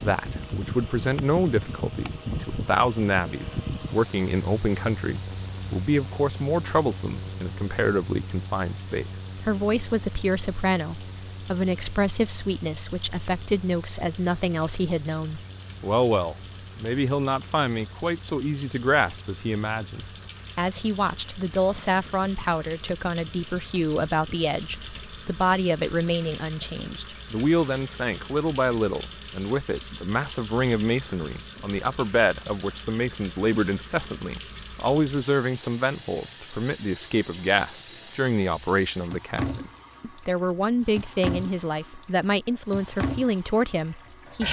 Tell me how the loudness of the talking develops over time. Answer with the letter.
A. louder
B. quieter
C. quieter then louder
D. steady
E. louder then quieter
D.